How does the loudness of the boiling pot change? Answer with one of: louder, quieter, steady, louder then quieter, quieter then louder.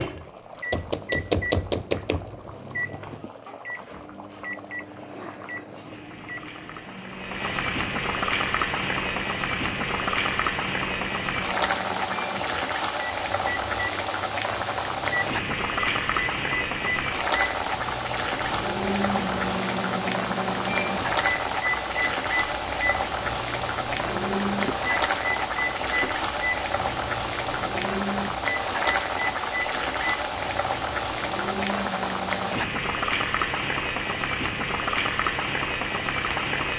louder.